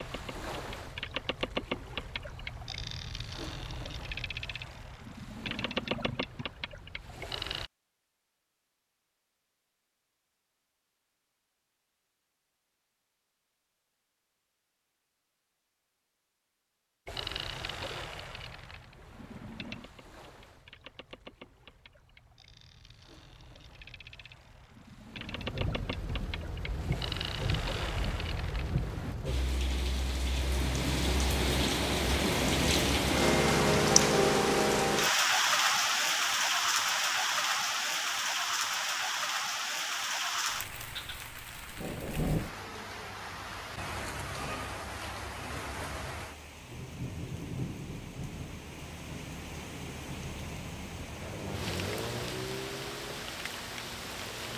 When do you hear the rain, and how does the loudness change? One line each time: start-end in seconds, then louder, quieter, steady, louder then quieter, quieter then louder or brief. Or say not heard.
25.1-54.5 louder then quieter.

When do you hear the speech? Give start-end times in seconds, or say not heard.
not heard.